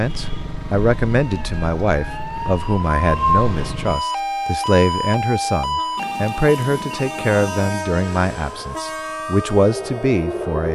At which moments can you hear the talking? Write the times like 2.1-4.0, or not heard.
0.0-10.6.